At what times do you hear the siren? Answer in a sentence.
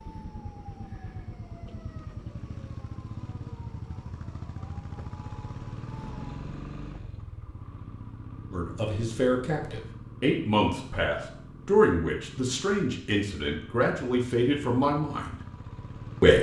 The siren can be heard from 0.0 to 6.4 s.